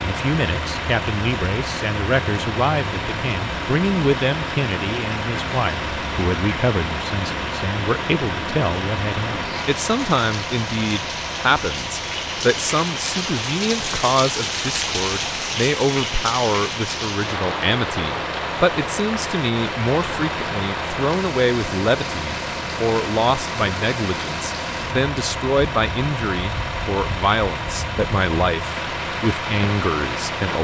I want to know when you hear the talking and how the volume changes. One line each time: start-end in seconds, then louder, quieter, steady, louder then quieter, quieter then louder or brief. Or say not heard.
0.0-30.6 steady.